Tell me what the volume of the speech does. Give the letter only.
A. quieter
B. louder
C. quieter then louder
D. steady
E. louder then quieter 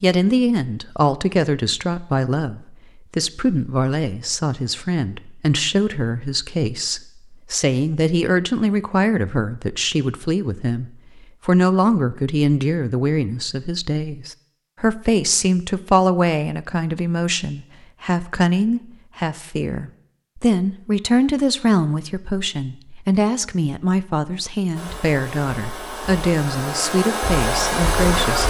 D.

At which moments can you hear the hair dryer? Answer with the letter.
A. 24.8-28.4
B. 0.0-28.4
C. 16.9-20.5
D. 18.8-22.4
A.